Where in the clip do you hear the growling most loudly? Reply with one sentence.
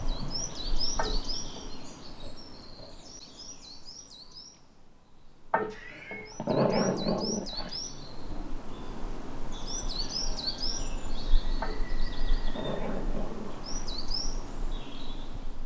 The volume of the growling peaks at 7 seconds.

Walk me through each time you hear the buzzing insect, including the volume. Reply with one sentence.
The buzzing insect can't be heard in this clip.